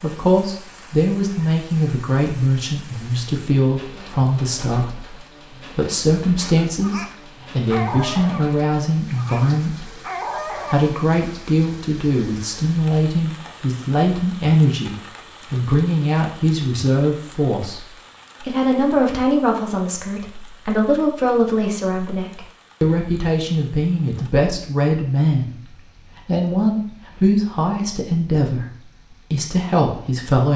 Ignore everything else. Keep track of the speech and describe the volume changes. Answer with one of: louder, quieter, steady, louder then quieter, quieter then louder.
steady.